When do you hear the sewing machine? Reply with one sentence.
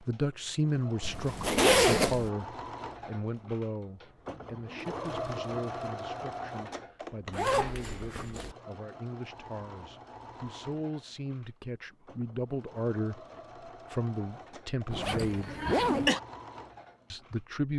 The sewing machine can be heard from 0.0 to 17.6 s.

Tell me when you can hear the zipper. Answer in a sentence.
The zipper can be heard from 1.0 to 2.3 s, from 7.3 to 8.6 s and from 14.9 to 16.1 s.